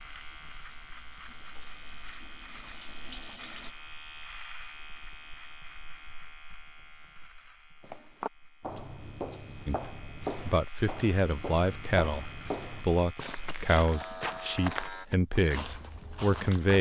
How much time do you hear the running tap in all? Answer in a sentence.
The running tap can be heard for 4 seconds in total.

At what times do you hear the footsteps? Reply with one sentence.
The footsteps can be heard from 7.8 to 16.7 s.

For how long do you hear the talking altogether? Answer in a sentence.
The talking can be heard for 7 seconds in total.